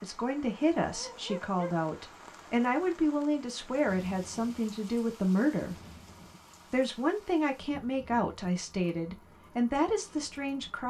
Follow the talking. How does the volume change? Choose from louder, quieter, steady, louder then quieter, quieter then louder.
steady.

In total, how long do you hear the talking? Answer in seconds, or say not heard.
10 s.